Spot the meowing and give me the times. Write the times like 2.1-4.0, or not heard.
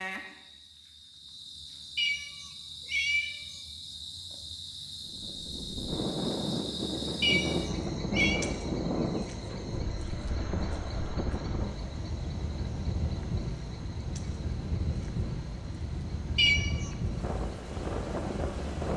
1.9-3.6, 7.2-8.4, 16.4-16.9.